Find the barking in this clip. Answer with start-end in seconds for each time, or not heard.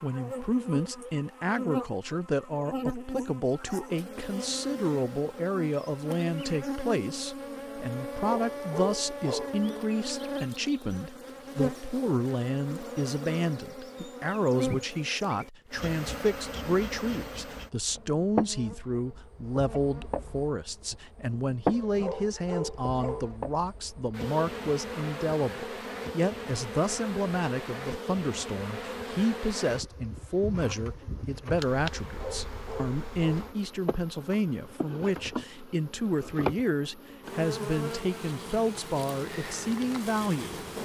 8.2-9.6, 21.7-23.4, 32.0-33.5.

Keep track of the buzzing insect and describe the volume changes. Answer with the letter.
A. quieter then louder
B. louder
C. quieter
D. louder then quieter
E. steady
E.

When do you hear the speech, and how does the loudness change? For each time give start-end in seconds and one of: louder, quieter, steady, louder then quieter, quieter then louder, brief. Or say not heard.
0.0-40.6 steady.